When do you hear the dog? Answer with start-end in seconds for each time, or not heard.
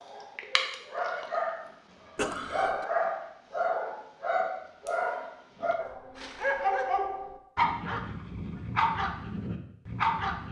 0.0-10.4.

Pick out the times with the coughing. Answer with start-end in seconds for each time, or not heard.
2.1-2.9.